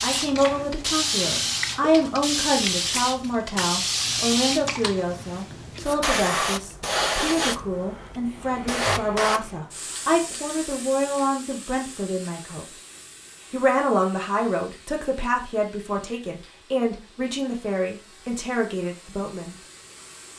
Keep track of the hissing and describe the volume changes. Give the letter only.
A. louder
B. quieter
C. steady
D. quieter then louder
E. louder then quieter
B.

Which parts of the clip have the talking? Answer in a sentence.
The talking can be heard from 0.0 to 12.7 s and from 13.5 to 19.6 s.